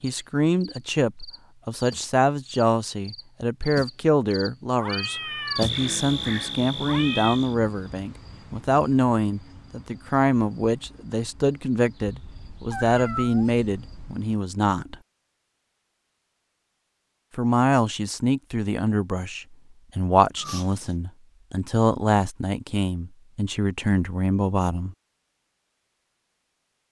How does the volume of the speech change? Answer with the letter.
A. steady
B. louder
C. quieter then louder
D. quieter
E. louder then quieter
A.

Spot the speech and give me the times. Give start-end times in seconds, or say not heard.
0.0-14.9, 17.4-24.9.